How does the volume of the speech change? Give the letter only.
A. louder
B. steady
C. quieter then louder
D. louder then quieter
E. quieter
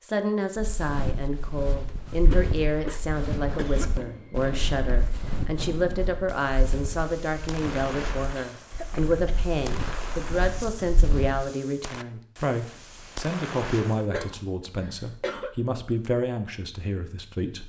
B.